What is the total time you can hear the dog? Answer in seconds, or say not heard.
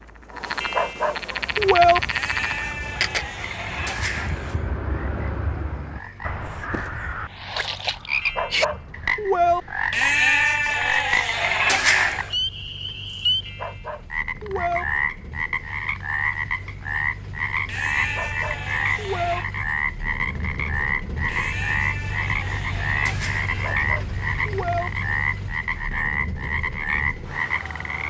7 s.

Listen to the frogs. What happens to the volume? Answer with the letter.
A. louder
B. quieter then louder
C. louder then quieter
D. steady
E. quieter
D.